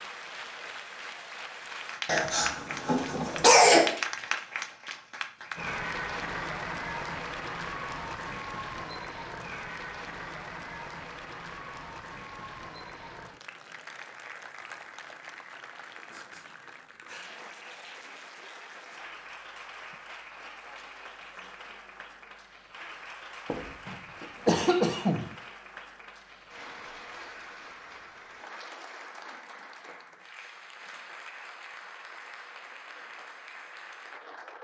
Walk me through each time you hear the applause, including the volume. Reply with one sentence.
The applause can be heard from 0.0 to 34.6 s, getting quieter.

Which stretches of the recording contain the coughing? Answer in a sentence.
The coughing can be heard from 2.0 to 4.0 s and from 23.5 to 25.2 s.